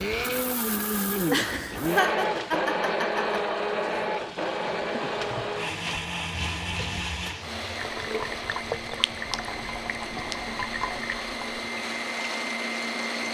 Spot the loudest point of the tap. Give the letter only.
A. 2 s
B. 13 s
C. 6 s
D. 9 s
D.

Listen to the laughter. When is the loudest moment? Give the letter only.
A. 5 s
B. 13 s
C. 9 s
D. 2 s
D.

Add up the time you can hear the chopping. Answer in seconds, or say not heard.
not heard.